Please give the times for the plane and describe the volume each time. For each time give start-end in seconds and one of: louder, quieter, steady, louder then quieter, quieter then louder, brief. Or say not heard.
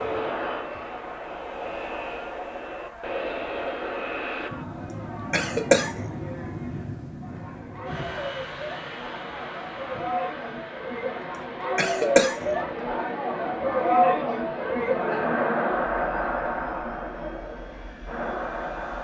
0.0-18.9 quieter.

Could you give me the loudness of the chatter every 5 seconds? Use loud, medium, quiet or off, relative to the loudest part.
quiet, quiet, loud, loud.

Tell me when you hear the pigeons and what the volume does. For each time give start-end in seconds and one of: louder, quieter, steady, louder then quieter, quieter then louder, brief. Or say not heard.
not heard.